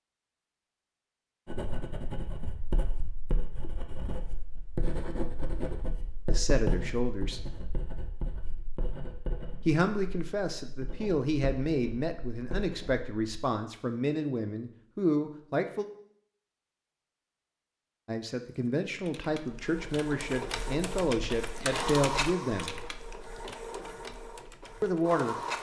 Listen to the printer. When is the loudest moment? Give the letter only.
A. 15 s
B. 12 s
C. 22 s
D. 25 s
C.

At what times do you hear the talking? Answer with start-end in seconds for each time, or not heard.
6.2-7.4, 9.7-15.8, 18.1-22.8, 24.8-25.4.